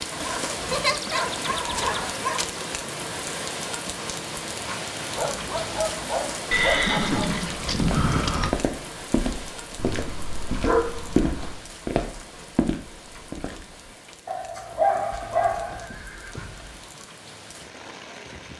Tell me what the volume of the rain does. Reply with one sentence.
The volume of the rain goes down.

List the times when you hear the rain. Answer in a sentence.
You can hear the rain from 0.0 to 18.5 s.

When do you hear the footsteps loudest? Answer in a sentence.
The loudest moment of the footsteps is at 11 seconds.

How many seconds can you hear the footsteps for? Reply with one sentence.
You can hear the footsteps for 6 seconds altogether.